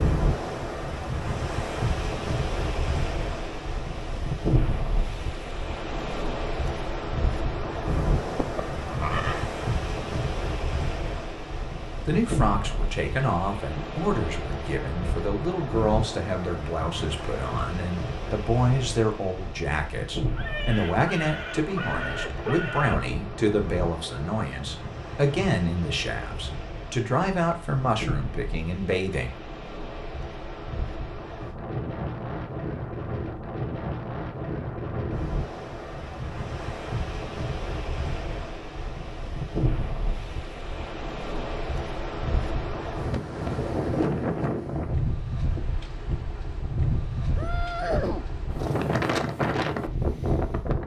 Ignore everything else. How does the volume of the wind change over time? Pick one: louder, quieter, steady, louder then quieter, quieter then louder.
quieter then louder.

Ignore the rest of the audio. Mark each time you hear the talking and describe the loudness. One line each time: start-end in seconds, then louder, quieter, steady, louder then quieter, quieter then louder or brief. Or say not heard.
12.1-29.4 steady.